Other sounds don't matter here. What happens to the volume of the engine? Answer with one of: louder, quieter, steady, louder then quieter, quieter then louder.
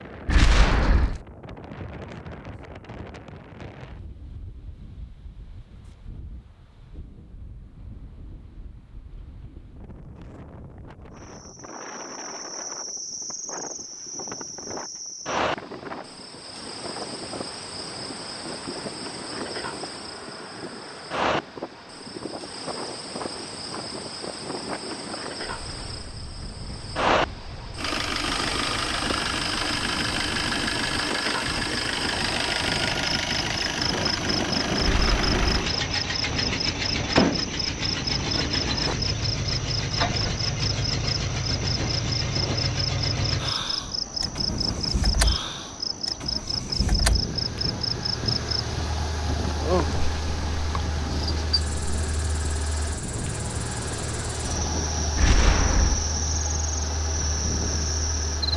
quieter.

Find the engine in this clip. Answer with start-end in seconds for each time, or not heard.
27.8-58.5.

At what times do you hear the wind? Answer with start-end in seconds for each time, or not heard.
0.0-58.5.